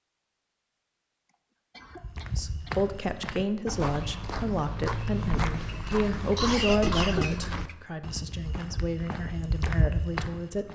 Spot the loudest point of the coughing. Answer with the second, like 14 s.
7 s.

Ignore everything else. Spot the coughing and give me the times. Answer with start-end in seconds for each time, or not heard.
1.2-3.2, 5.5-7.8.